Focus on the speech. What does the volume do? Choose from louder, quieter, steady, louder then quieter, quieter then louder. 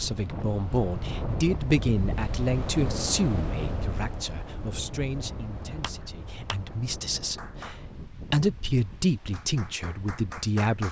quieter then louder.